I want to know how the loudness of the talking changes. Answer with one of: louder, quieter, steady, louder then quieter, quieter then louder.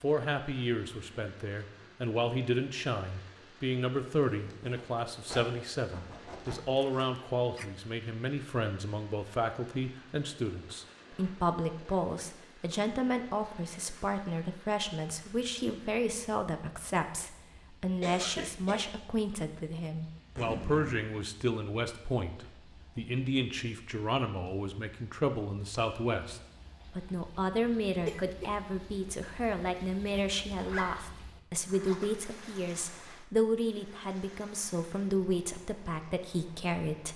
steady.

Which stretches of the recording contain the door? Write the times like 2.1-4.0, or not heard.
not heard.